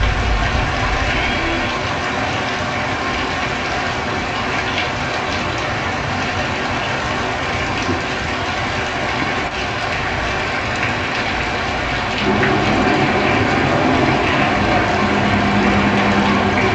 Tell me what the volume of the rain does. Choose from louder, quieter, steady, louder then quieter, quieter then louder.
steady.